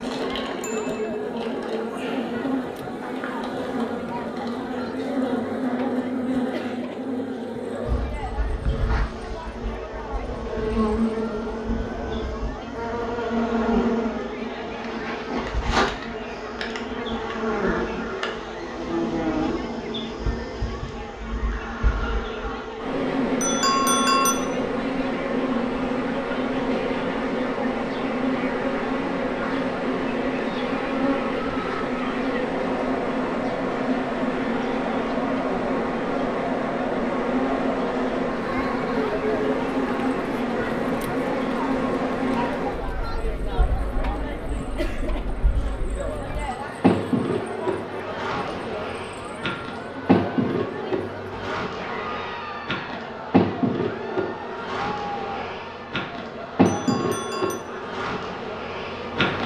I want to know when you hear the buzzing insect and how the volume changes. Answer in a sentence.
The buzzing insect can be heard from 0.0 to 59.4 s, at a steady volume.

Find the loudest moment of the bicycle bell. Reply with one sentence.
The loudest moment of the bicycle bell is at 24 seconds.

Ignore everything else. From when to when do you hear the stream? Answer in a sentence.
The stream can't be heard in this clip.